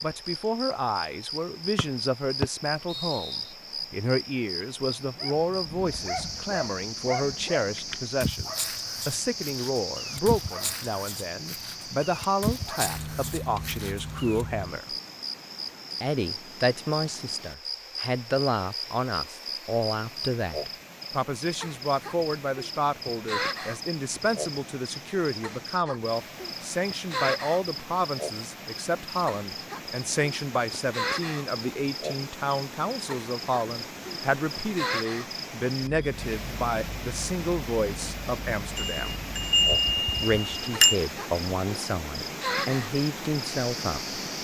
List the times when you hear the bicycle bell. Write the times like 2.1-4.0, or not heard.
38.8-41.0.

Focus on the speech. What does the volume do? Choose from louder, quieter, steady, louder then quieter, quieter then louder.
steady.